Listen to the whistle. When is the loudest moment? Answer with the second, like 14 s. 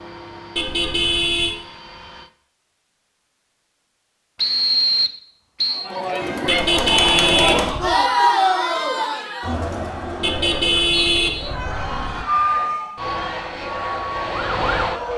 5 s.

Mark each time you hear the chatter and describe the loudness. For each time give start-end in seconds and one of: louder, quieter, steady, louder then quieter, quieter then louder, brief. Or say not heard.
5.7-15.1 quieter.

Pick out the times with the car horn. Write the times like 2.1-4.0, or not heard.
0.6-1.6, 6.5-8.0, 10.2-12.2.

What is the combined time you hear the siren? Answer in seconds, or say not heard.
3 s.